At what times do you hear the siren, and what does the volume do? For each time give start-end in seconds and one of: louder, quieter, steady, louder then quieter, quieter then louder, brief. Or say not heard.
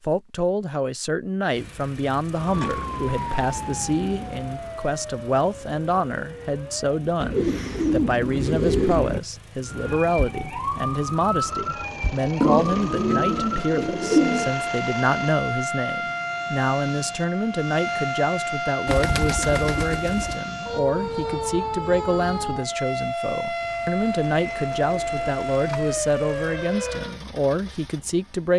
2.3-7.2 quieter
9.6-27.2 steady.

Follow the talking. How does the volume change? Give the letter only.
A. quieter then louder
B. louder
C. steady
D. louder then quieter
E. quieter
C.